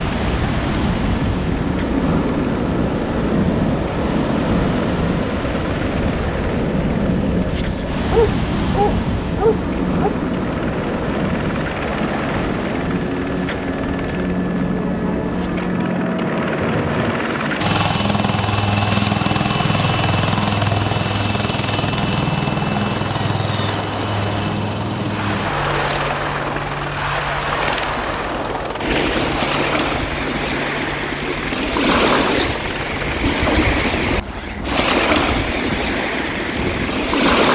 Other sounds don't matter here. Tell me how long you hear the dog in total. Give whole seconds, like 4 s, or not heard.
2 s.